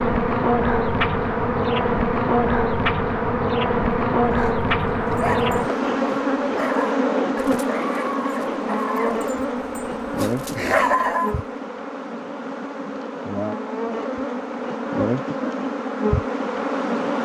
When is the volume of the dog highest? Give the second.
11 s.